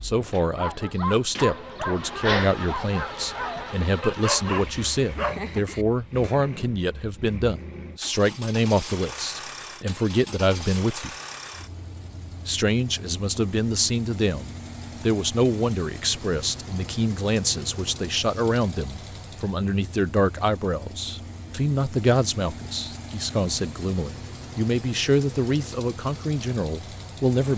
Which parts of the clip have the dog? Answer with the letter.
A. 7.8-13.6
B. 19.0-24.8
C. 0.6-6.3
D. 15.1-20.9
C.